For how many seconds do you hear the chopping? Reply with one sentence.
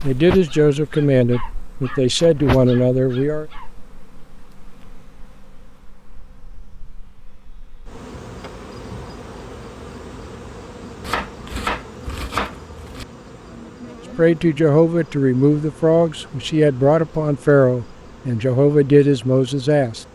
The chopping can be heard for 2 seconds in total.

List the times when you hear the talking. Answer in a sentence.
The talking can be heard from 0.0 to 3.5 s and from 14.2 to 20.1 s.